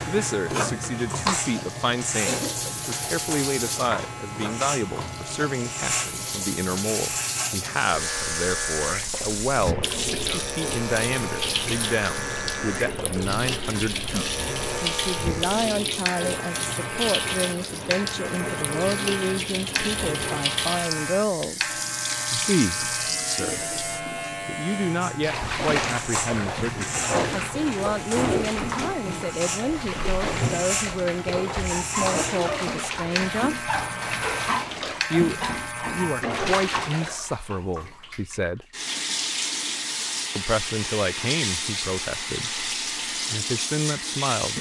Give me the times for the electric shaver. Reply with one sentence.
You can hear the electric shaver from 0.0 to 36.2 s.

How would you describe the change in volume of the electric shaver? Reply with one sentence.
The loudness of the electric shaver stays about the same.